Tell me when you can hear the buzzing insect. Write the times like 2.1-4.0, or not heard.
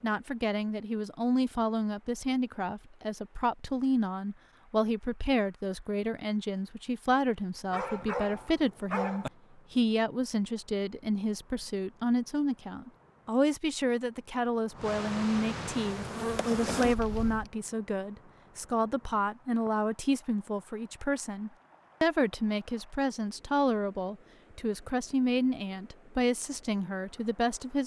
15.8-17.4.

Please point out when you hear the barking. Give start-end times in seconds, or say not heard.
7.7-9.3.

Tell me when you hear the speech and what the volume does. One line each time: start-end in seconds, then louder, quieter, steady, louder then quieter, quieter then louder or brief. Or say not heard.
0.0-27.8 steady.